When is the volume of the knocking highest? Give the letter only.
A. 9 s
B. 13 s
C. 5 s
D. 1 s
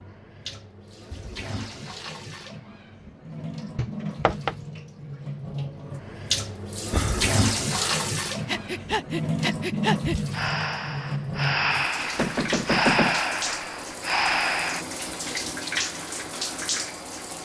B.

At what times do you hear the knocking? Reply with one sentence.
The knocking can be heard from 3.8 to 4.5 s and from 12.2 to 13.2 s.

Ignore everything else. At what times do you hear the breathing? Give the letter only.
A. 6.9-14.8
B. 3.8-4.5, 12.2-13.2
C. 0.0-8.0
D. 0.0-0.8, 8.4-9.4
A.